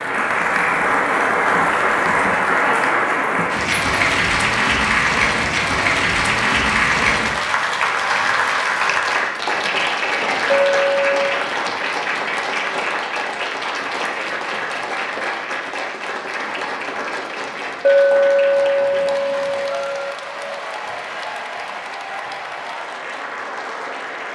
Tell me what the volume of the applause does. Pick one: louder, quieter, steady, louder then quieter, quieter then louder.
quieter.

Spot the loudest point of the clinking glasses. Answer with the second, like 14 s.
18 s.